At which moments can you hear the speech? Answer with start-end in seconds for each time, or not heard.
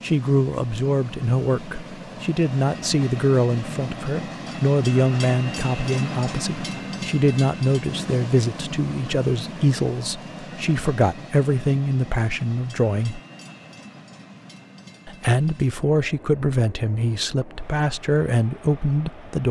0.0-13.2, 15.1-19.4.